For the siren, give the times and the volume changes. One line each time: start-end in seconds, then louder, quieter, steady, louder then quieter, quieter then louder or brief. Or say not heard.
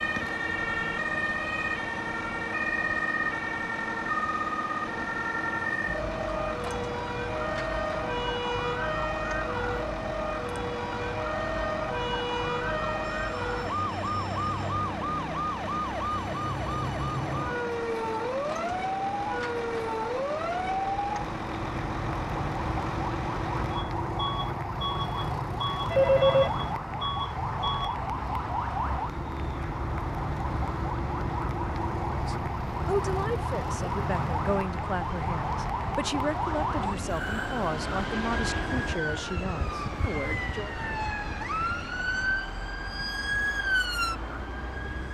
0.0-45.1 steady.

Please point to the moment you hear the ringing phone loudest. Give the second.
26 s.